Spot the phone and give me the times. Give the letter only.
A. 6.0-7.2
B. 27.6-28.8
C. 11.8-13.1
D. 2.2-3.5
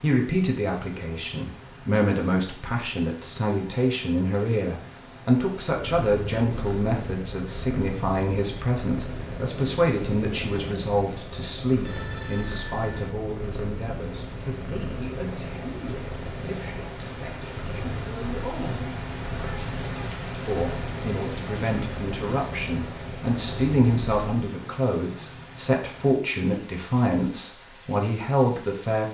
C.